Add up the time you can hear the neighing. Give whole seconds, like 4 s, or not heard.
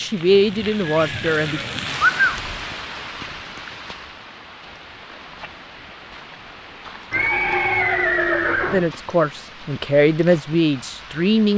3 s.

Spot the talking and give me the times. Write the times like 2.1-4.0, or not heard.
0.0-1.6, 8.7-11.5.